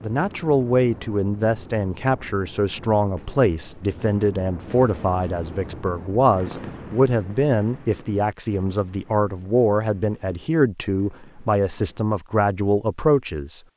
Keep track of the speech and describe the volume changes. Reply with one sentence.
The loudness of the speech stays about the same.